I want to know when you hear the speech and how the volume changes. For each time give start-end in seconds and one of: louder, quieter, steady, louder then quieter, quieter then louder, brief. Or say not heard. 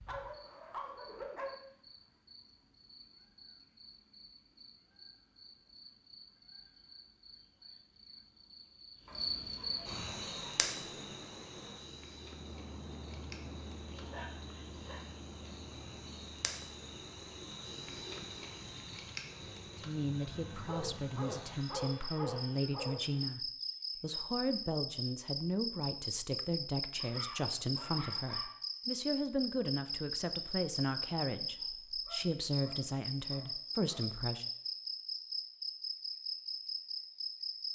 19.8-34.5 steady.